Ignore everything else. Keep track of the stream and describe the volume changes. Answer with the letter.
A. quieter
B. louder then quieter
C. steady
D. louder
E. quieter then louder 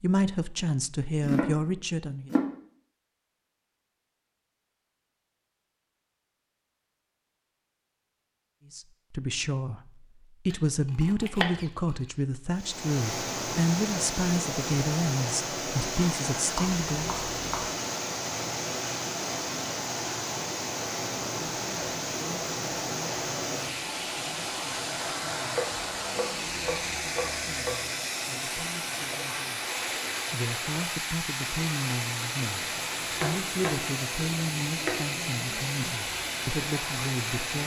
C.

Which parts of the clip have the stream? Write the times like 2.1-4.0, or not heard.
12.5-37.6.